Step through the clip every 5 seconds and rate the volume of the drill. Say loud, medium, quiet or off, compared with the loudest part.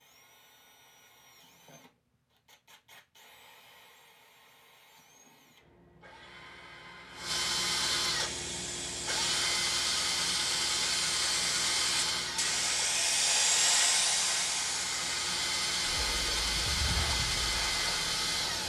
quiet, loud, loud, loud.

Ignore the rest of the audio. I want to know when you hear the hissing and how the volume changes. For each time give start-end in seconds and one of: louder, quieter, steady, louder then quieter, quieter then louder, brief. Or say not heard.
8.2-18.6 louder then quieter.